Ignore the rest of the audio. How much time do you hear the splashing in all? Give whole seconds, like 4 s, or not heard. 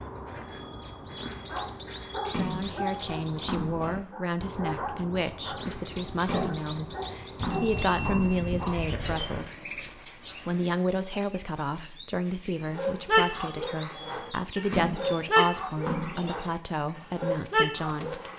5 s.